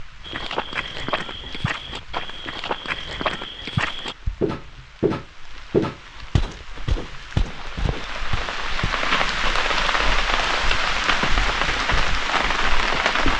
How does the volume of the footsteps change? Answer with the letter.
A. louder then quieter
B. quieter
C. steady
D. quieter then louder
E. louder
A.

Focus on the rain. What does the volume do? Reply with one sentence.
The volume of the rain goes up.